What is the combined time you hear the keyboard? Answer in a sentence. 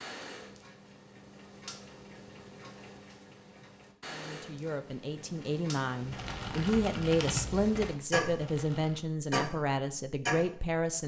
You can hear the keyboard for 3 seconds altogether.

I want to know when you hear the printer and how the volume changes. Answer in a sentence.
The printer can't be heard in this clip.